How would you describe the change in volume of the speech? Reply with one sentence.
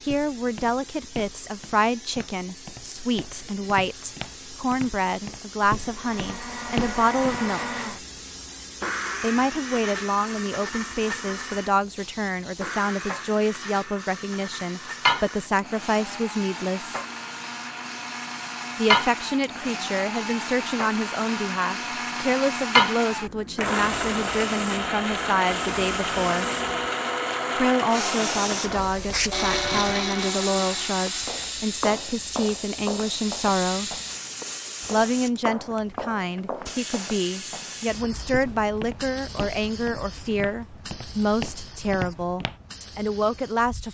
The loudness of the speech stays about the same.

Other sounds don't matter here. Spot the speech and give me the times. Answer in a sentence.
You can hear the speech from 0.0 to 7.8 s, from 9.2 to 17.0 s, from 18.8 to 26.5 s, from 27.6 to 34.0 s and from 34.9 to 43.8 s.